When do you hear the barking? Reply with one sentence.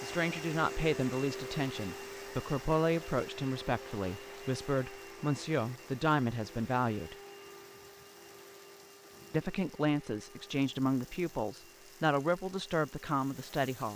You can't hear the barking here.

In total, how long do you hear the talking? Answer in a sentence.
The talking can be heard for 12 seconds in total.